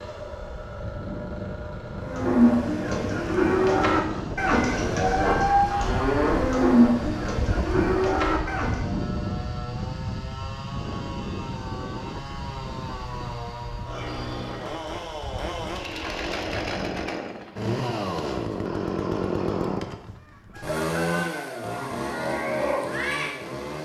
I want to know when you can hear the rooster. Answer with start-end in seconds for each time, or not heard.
20.1-21.9.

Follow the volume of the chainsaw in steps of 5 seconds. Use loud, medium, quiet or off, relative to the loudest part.
medium, medium, medium, loud, loud.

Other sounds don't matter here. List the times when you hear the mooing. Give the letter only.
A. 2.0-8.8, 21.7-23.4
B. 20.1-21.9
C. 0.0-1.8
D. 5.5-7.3
A.